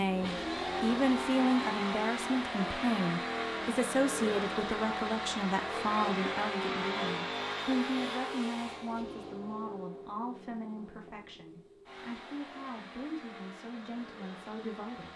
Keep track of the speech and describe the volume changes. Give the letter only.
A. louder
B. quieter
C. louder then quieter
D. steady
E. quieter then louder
B.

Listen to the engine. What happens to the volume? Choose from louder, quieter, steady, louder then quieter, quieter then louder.
quieter.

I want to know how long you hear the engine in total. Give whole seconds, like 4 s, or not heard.
15 s.